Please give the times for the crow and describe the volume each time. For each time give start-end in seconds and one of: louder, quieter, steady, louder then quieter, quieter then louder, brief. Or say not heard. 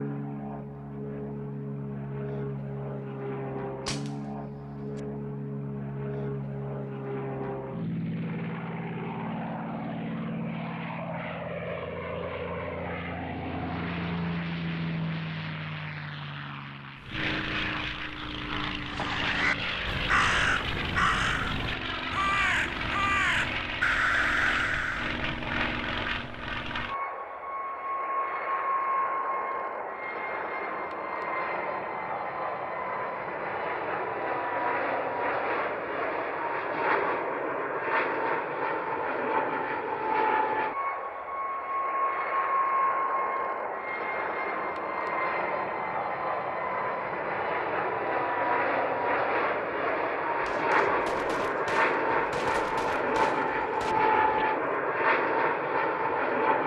18.9-25.2 steady.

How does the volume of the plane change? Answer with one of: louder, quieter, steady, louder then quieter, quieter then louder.
louder.